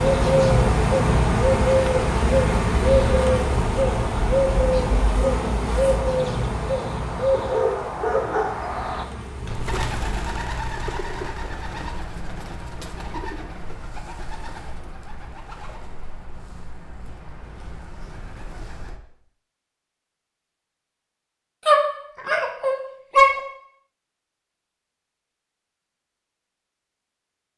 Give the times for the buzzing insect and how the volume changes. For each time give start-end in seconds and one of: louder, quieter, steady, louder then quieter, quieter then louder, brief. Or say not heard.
0.0-10.4 quieter.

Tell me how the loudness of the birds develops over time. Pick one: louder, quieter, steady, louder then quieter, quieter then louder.
quieter.